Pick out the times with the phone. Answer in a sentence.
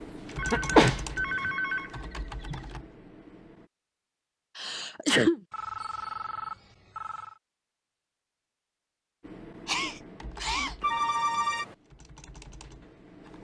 You can hear the phone from 0.3 to 2.6 s, from 5.5 to 7.4 s and from 10.8 to 11.8 s.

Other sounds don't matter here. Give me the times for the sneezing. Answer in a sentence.
You can hear the sneezing from 0.5 to 1.5 s, from 4.5 to 5.4 s and from 9.7 to 10.8 s.